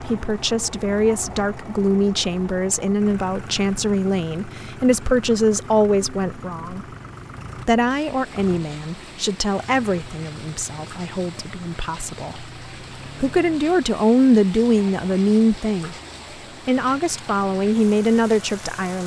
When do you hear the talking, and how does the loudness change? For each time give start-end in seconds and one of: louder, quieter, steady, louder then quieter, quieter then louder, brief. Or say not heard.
0.0-6.8 steady
7.7-12.4 quieter
13.2-15.9 brief
16.6-19.0 brief.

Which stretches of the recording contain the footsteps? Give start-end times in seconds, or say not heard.
not heard.